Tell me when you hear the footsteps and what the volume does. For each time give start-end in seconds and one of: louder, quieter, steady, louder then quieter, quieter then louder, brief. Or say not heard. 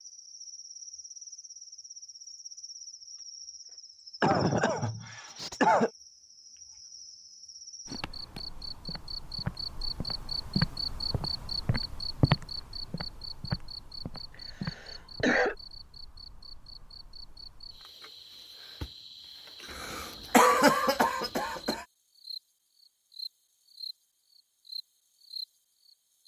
7.8-15.3 louder then quieter.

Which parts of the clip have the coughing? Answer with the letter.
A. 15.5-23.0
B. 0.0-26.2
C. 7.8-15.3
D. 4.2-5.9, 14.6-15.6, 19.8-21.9
D.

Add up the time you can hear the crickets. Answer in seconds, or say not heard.
26 s.